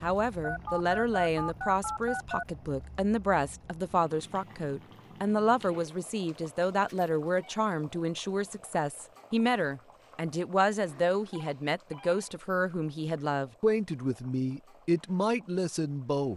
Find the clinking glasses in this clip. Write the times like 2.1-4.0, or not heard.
not heard.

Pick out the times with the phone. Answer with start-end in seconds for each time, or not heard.
0.4-2.5, 6.7-7.6, 11.3-12.3.